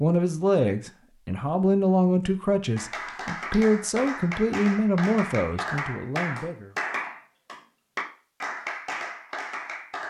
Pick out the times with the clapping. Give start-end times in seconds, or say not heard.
2.8-10.0.